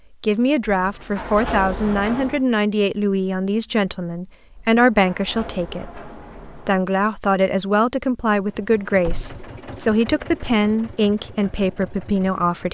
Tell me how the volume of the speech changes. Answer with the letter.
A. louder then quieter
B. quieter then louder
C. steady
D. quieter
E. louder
C.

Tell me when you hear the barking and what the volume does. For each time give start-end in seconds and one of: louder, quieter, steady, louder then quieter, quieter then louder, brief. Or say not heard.
not heard.